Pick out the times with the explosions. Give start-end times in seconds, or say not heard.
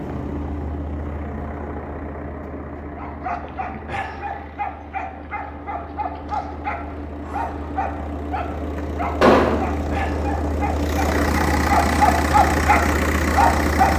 9.2-9.7.